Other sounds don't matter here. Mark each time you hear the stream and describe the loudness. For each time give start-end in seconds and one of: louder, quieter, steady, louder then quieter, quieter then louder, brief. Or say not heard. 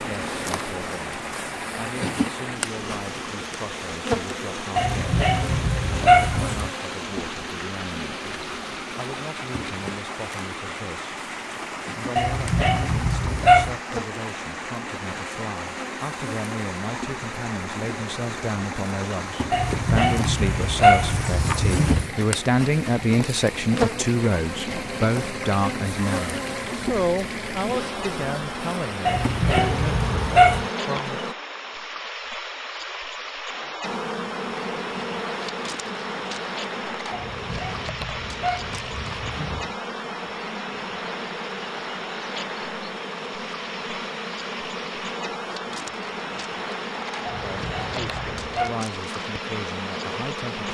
0.0-50.6 steady.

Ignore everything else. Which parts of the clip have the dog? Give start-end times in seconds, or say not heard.
4.8-6.7, 12.2-13.8, 19.5-22.1, 29.1-30.6, 37.1-39.7, 47.2-48.8.